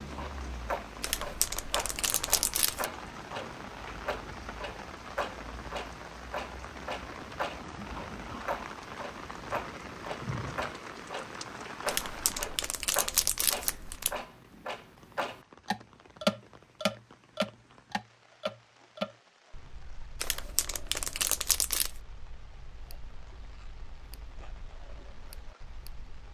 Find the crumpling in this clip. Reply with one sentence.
The crumpling can be heard from 1.0 to 2.9 s, from 11.8 to 14.2 s and from 20.2 to 21.9 s.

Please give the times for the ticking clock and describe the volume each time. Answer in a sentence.
You can hear the ticking clock from 0.0 to 26.3 s, getting louder then quieter.